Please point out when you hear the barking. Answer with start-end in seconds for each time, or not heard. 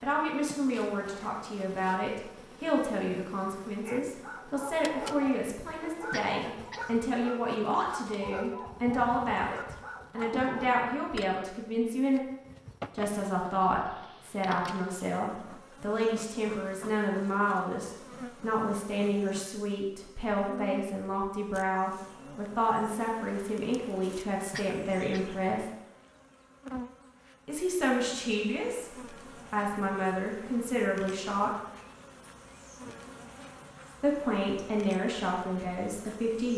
3.8-10.7.